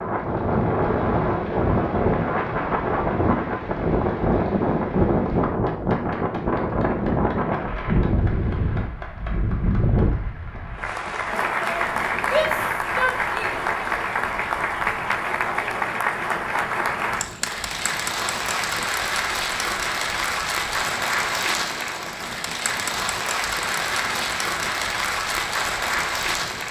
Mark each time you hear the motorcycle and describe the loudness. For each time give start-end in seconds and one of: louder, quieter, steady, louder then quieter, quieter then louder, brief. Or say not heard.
not heard.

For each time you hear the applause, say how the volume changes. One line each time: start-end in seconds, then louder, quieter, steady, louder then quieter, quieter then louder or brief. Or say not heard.
0.1-26.6 louder.